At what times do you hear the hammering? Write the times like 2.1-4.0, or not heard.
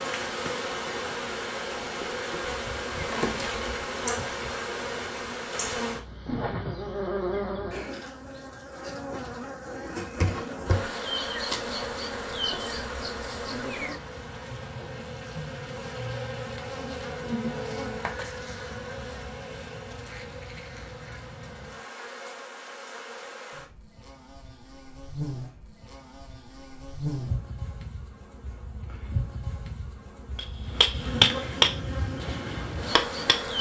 30.4-33.5.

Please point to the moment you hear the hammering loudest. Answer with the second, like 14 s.
31 s.